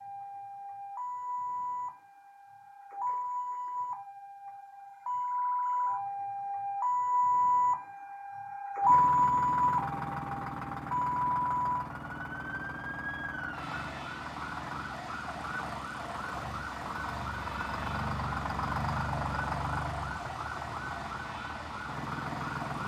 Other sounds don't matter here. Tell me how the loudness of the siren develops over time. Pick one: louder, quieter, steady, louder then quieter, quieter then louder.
louder then quieter.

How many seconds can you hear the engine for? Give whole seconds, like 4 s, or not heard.
14 s.